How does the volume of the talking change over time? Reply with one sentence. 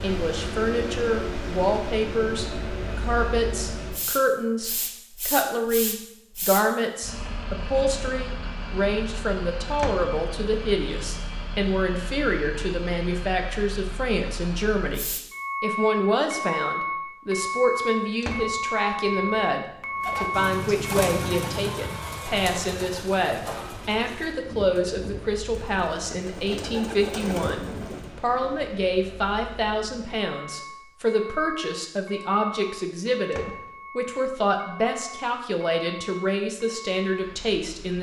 The volume of the talking stays about the same.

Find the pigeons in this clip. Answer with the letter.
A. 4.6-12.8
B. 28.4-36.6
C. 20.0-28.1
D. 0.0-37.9
C.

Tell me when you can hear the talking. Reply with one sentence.
You can hear the talking from 0.0 to 37.9 s.